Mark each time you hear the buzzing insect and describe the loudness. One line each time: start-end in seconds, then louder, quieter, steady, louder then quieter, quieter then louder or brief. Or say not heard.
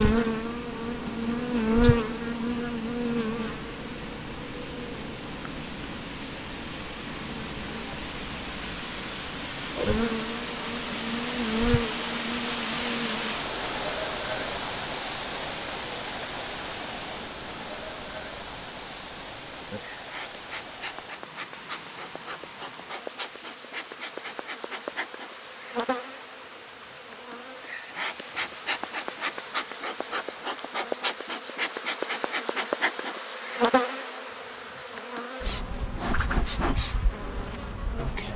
0.0-38.3 quieter then louder.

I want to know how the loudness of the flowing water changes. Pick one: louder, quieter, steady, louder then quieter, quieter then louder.
louder then quieter.